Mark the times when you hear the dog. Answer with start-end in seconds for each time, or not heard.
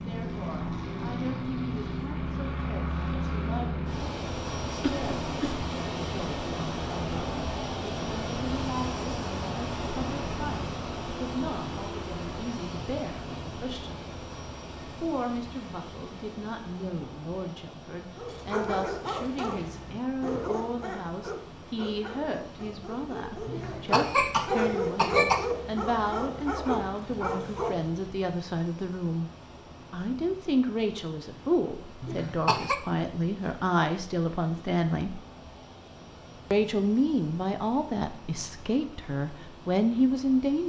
18.1-28.1.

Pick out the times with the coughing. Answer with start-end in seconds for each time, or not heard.
4.8-5.7, 23.4-25.4, 32.0-32.8.